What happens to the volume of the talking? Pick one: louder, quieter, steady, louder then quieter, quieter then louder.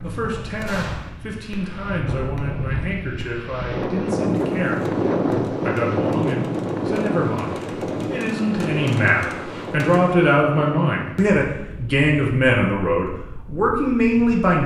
louder.